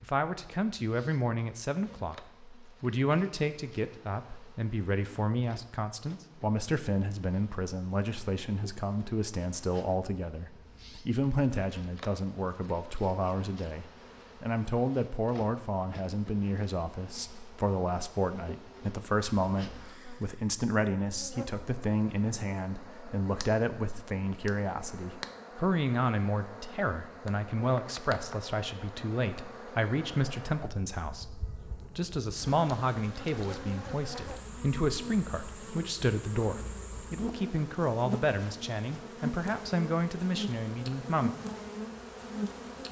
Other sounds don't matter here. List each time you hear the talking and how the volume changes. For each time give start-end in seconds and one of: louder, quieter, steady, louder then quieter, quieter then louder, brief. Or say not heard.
0.0-41.4 steady.